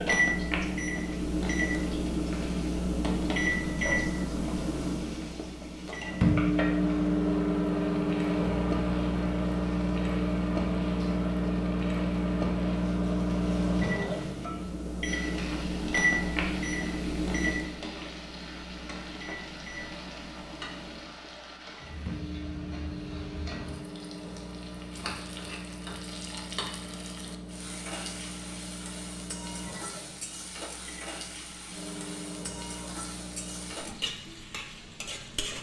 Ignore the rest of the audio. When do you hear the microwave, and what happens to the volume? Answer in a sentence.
The microwave can be heard from 0.0 to 33.8 s, getting quieter.